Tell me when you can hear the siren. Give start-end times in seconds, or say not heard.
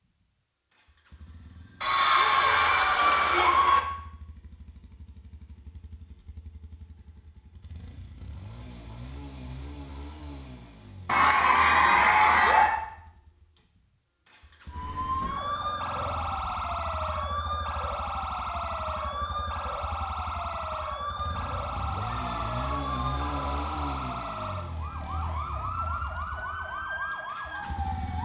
14.7-28.2.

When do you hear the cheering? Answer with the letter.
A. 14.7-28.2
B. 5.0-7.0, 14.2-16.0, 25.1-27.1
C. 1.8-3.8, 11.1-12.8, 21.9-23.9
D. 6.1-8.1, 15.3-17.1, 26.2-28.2
C.